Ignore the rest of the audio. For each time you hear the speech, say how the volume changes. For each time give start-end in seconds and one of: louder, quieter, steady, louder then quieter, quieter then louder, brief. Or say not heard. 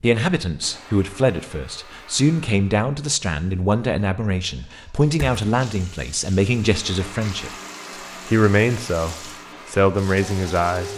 0.0-7.5 steady
8.2-10.9 brief.